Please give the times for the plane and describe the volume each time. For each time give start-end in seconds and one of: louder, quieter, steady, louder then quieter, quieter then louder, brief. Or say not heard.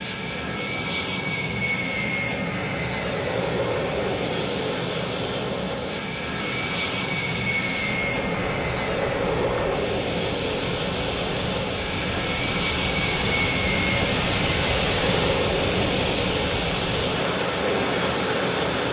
0.0-18.8 steady.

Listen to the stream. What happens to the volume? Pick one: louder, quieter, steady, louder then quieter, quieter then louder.
louder.